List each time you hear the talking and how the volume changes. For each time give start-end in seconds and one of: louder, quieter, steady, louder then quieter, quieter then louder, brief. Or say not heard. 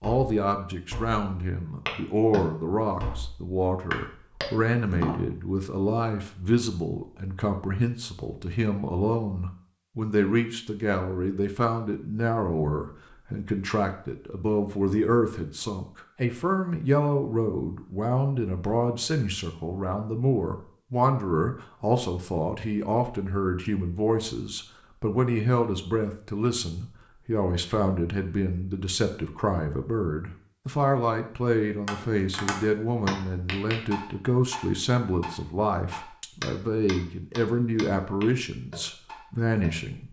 0.0-40.0 steady.